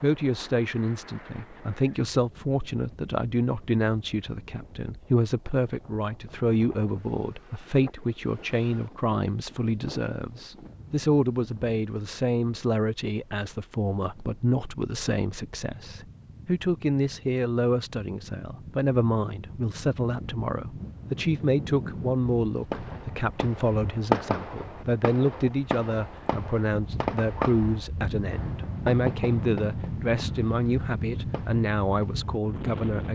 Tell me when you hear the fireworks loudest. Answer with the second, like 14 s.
24 s.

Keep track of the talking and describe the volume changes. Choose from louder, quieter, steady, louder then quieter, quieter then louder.
steady.